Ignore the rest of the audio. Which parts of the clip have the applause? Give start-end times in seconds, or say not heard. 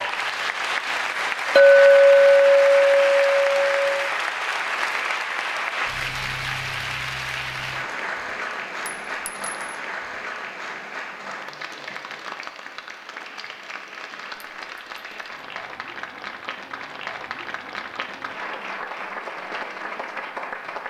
0.0-20.8.